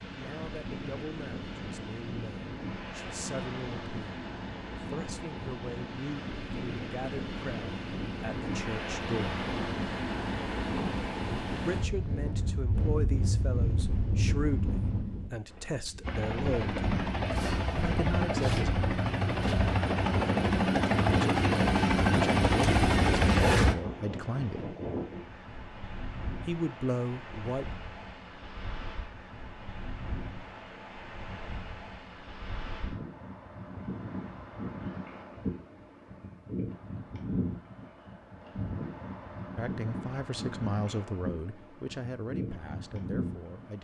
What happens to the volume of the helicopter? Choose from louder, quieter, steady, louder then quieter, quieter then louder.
louder.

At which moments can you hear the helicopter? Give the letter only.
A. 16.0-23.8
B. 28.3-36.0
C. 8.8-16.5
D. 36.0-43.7
A.